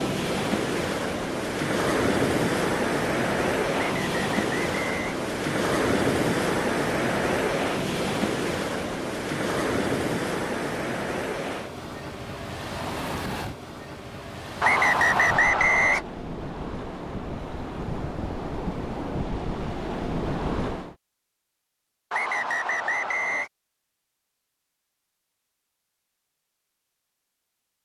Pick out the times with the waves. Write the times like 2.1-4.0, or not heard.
0.0-20.9.